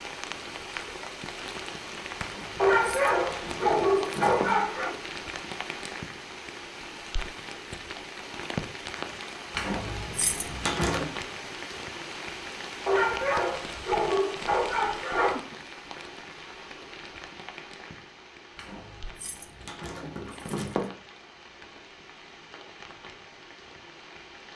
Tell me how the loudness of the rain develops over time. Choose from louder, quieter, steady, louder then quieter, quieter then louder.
quieter.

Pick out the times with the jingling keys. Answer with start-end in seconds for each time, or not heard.
2.2-4.7, 9.5-11.1, 18.6-20.9.